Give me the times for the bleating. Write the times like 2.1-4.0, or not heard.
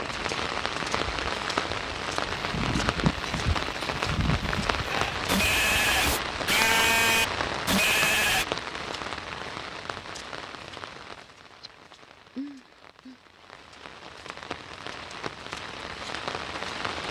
2.2-8.4.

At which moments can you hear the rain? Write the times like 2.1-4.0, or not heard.
0.0-17.0.